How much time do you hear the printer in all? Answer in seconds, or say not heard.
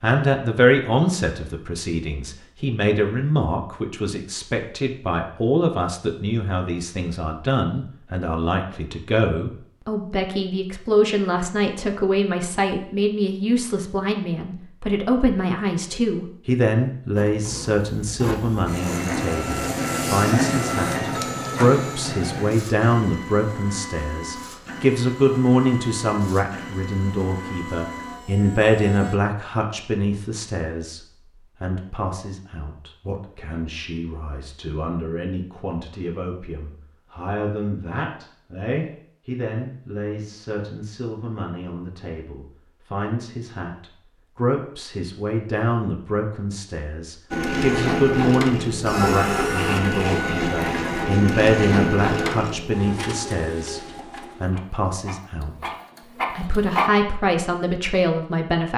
22 s.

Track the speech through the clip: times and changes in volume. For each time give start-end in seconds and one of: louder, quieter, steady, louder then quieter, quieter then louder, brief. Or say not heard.
0.0-55.7 quieter then louder
56.3-58.7 brief.